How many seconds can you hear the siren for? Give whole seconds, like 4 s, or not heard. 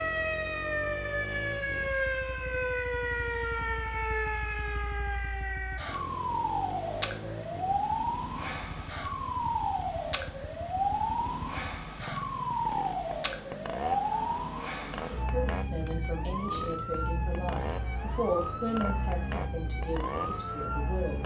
21 s.